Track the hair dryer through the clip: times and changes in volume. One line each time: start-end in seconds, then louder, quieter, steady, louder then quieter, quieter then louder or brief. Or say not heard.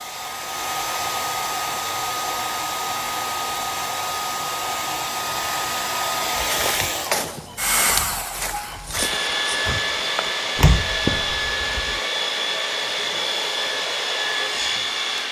0.0-15.2 steady.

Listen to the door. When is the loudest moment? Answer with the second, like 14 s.
11 s.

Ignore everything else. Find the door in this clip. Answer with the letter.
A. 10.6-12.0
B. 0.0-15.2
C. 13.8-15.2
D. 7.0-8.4
A.